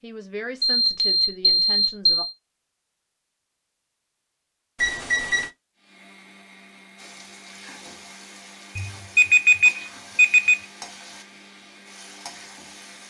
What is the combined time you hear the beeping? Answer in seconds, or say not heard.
4 s.